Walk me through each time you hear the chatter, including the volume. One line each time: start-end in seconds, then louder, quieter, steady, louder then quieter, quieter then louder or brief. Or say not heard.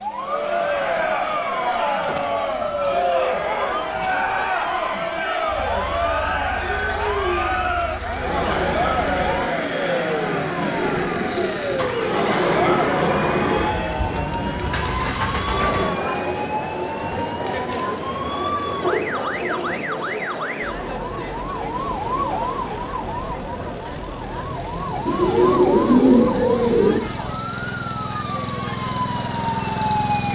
0.1-30.3 quieter.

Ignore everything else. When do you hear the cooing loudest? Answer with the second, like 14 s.
26 s.